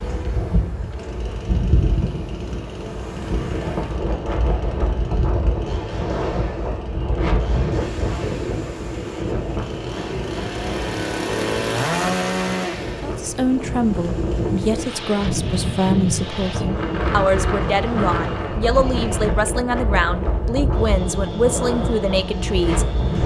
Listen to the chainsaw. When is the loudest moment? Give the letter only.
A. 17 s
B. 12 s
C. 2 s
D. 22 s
B.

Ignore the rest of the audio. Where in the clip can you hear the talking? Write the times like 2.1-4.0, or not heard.
13.0-23.2.